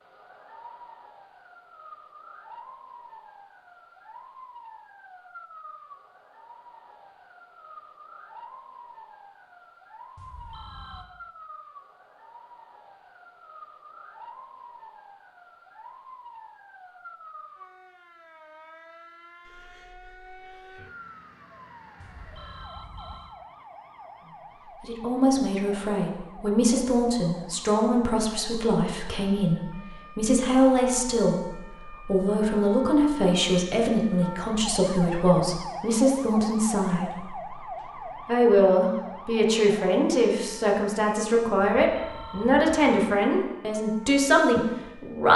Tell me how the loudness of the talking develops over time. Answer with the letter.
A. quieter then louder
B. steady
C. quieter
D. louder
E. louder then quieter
B.